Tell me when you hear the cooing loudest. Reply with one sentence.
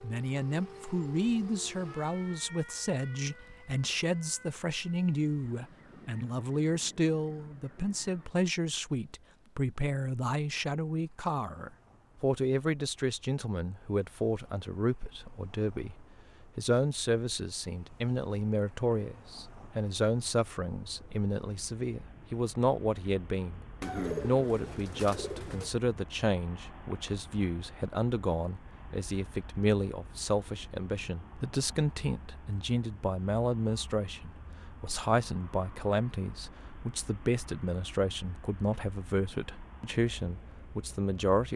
The loudest moment of the cooing is at 24 seconds.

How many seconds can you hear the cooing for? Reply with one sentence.
The cooing can be heard for 2 seconds in total.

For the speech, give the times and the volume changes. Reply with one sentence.
The speech can be heard from 0.0 to 41.5 s, at a steady volume.